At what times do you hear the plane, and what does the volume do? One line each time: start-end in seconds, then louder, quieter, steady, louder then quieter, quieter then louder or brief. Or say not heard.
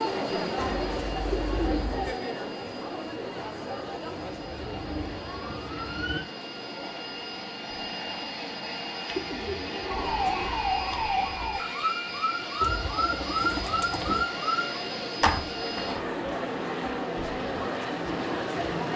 0.0-18.9 louder.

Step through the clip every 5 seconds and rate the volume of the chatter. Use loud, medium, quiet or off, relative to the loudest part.
loud, medium, medium, loud.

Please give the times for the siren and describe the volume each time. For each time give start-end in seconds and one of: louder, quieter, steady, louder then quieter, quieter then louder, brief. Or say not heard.
4.0-6.2 brief
9.8-14.8 steady.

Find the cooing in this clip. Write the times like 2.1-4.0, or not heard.
0.6-2.1, 9.1-10.5, 12.6-14.2.